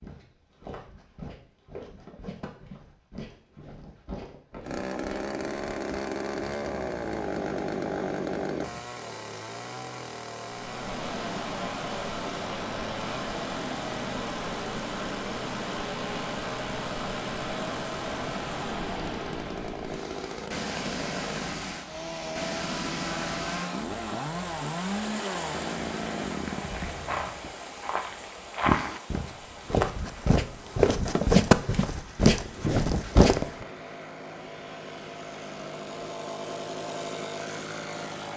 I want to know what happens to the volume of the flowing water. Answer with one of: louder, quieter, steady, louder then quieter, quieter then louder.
quieter.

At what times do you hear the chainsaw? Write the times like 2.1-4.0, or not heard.
4.6-27.4, 33.0-38.3.